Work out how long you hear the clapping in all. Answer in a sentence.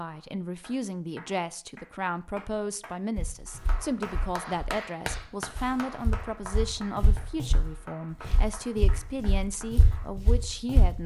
You can hear the clapping for 10 seconds altogether.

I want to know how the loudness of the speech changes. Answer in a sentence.
The volume of the speech stays about the same.